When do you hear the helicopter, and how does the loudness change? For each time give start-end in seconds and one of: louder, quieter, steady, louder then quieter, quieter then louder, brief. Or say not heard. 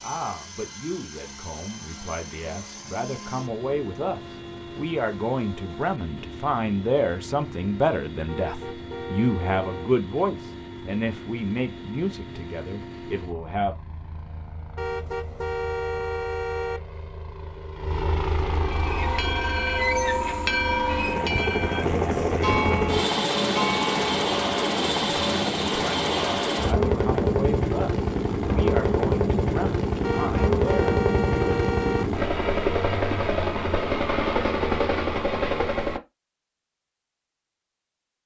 0.0-36.0 louder.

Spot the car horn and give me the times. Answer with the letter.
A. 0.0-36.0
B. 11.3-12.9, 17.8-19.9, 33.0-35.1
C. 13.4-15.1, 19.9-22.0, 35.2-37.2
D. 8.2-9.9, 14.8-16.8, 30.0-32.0
D.